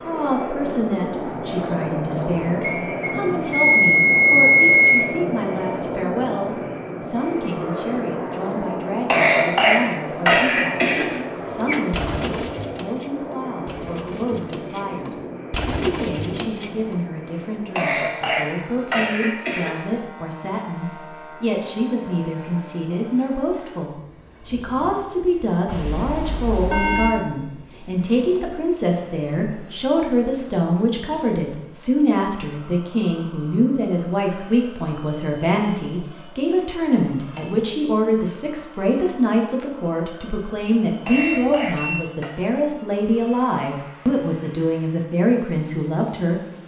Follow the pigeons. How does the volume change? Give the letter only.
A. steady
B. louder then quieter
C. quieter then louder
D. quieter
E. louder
C.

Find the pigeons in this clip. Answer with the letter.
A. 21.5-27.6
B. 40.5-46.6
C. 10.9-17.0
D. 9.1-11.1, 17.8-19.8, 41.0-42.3
C.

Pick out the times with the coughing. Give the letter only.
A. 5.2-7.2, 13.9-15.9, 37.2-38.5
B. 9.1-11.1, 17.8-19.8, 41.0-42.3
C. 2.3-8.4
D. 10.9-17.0
B.